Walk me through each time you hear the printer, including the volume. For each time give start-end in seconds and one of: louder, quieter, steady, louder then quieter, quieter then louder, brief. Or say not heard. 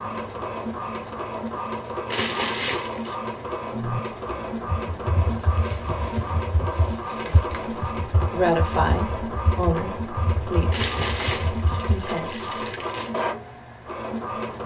0.0-14.6 steady.